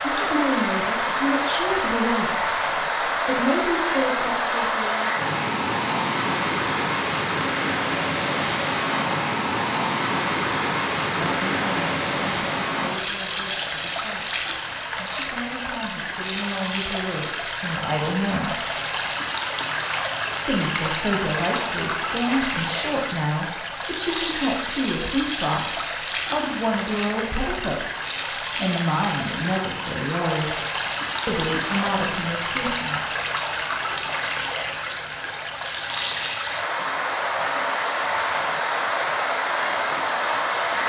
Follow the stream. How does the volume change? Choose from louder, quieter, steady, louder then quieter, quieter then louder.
steady.